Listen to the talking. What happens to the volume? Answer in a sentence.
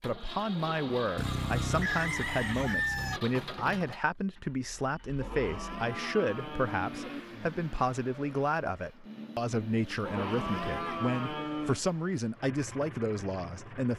The volume of the talking stays about the same.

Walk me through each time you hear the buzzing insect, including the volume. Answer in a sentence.
You can't hear the buzzing insect here.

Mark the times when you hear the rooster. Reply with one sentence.
You can hear the rooster from 1.1 to 3.2 s.